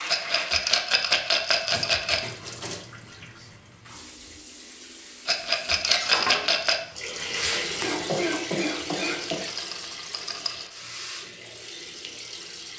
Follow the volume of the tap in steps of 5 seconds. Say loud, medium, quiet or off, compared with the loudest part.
medium, loud, medium.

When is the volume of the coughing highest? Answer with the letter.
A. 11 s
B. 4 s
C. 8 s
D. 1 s
C.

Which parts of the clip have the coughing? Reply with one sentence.
The coughing can be heard from 7.8 to 9.6 s.